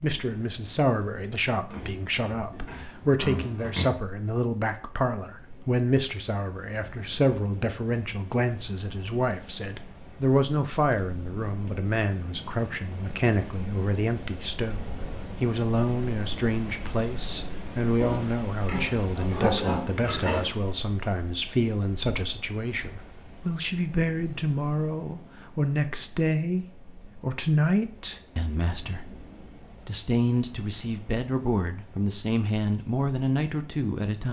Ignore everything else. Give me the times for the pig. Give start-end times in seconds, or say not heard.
1.7-4.0, 18.0-20.6.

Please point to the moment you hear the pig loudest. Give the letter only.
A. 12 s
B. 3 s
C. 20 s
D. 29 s
C.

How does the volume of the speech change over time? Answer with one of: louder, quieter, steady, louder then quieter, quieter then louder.
steady.